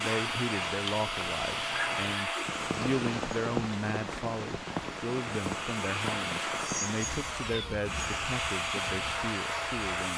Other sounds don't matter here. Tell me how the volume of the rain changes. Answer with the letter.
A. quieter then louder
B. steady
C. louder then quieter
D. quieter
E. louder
C.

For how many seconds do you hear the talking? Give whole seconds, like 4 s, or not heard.
10 s.